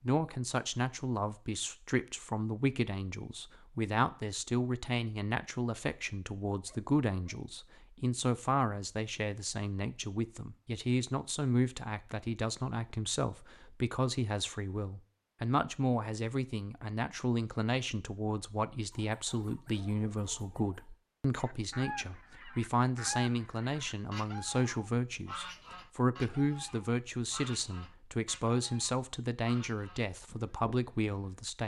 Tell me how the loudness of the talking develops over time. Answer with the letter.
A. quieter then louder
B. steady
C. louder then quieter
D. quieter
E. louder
B.